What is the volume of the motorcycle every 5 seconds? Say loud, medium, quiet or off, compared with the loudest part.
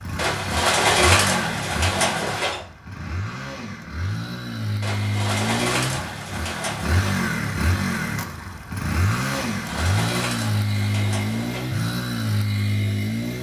medium, loud, loud.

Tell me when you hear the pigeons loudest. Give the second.
1 s.